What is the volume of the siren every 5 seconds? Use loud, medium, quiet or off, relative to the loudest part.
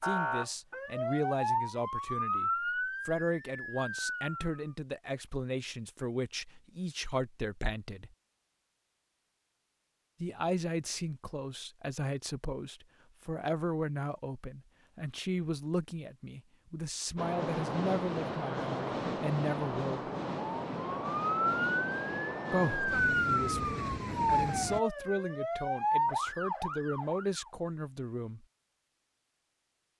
loud, off, off, off, loud, loud.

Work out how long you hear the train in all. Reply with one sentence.
The train can be heard for 8 seconds in total.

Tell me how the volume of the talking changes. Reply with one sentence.
The loudness of the talking stays about the same.